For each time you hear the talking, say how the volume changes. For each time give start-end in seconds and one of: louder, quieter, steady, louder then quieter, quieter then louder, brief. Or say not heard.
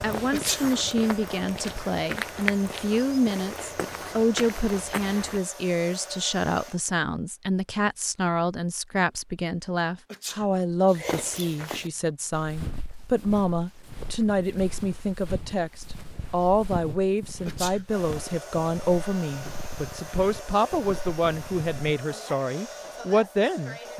0.0-23.9 steady.